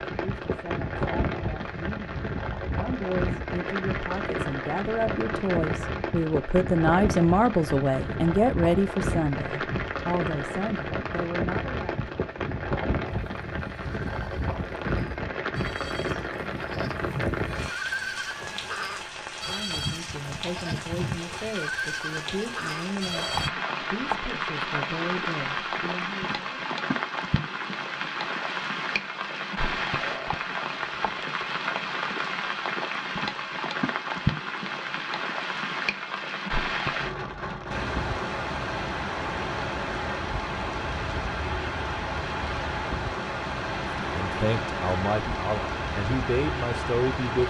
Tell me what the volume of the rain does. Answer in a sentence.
The volume of the rain stays about the same.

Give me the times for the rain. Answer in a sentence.
You can hear the rain from 0.0 to 47.4 s.